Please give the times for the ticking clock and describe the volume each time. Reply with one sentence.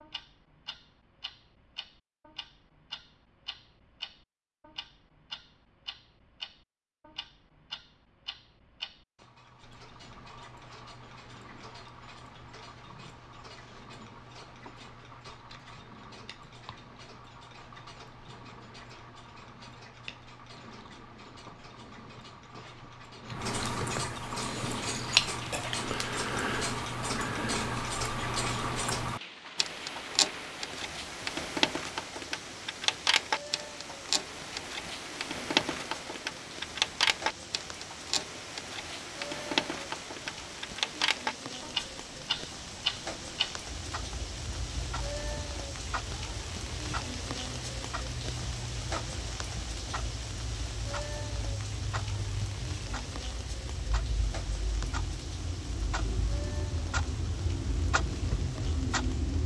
The ticking clock can be heard from 0.0 to 59.4 s, getting louder then quieter.